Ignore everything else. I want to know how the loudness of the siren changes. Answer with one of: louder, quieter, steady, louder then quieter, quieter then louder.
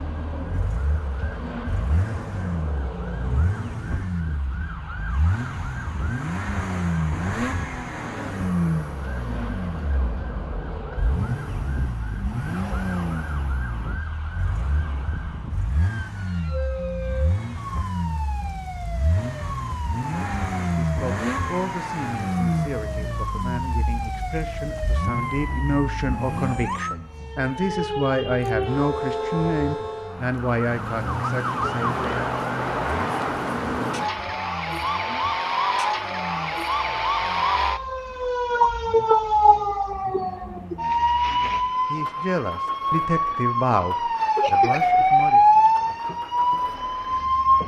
louder.